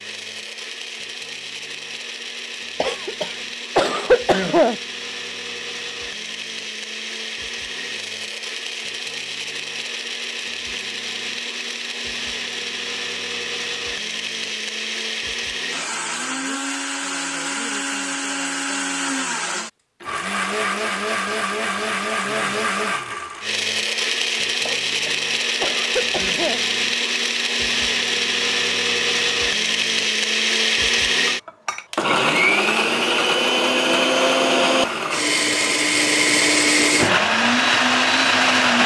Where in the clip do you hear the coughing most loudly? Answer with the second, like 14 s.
4 s.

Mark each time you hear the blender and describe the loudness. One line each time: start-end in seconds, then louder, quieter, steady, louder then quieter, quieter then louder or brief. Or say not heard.
0.0-38.8 louder.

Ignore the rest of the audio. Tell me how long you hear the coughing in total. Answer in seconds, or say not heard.
4 s.